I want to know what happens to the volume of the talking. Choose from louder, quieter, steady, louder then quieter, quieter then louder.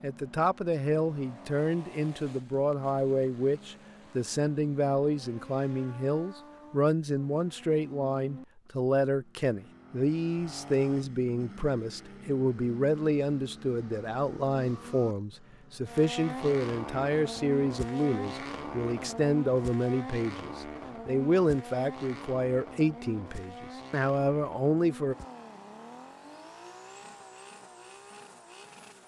steady.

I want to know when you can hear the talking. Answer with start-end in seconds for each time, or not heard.
0.0-25.1.